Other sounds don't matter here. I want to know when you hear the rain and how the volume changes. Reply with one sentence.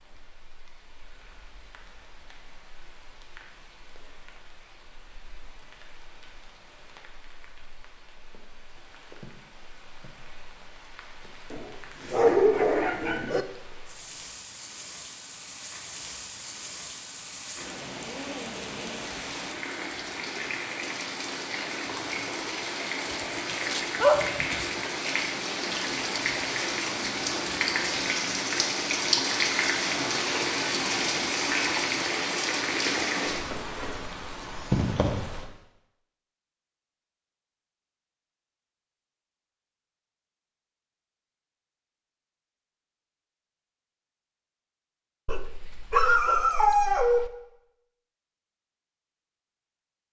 You can hear the rain from 0.0 to 35.5 s, getting louder.